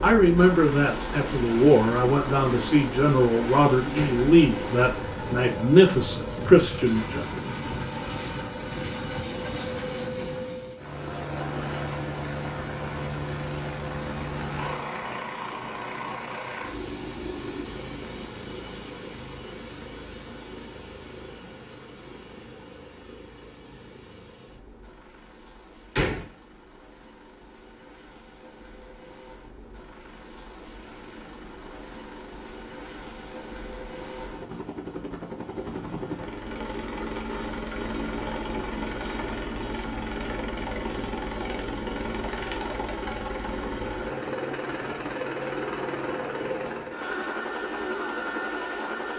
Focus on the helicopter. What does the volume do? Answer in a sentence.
The loudness of the helicopter goes down, then up.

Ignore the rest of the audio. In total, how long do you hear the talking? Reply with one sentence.
You can hear the talking for 7 seconds altogether.